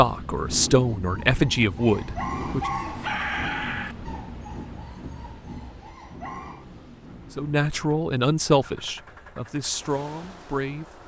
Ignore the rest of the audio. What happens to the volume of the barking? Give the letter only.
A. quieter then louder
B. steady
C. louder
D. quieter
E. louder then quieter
E.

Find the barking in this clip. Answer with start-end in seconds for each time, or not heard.
0.8-6.7.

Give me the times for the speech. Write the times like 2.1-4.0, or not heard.
0.0-2.7, 7.3-10.8.